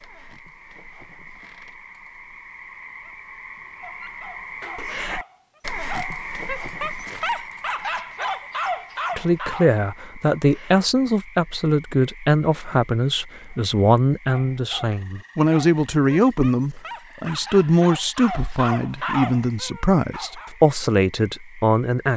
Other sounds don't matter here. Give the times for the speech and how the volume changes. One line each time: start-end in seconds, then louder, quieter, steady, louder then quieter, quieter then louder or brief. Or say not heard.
9.2-22.1 steady.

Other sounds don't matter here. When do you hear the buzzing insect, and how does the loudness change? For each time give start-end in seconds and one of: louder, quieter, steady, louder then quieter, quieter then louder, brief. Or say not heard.
not heard.